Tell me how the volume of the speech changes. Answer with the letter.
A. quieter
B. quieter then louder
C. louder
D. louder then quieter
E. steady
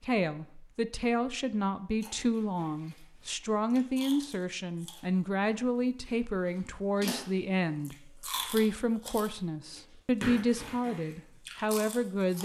E.